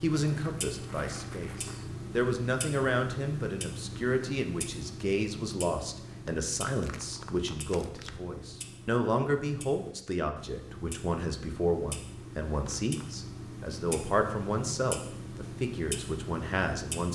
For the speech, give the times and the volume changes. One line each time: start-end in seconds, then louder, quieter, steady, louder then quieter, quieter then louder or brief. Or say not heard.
0.0-17.1 steady.